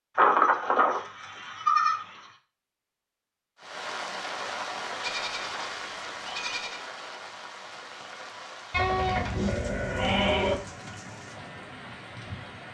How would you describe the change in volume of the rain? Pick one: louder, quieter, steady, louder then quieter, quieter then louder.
quieter.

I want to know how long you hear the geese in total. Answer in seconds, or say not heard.
not heard.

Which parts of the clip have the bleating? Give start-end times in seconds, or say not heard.
0.1-2.0, 5.0-6.8, 8.7-10.6.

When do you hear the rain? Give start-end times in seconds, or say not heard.
3.5-12.7.